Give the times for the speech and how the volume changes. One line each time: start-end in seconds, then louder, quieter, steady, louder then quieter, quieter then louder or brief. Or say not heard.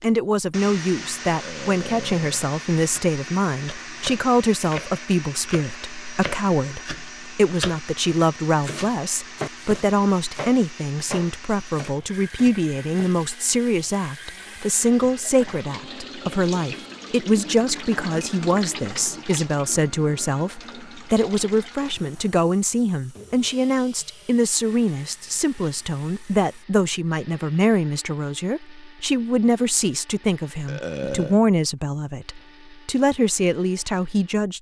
0.0-34.5 steady.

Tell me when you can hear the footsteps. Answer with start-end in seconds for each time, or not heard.
not heard.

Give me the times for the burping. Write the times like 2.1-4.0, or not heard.
1.3-2.5, 30.6-31.4.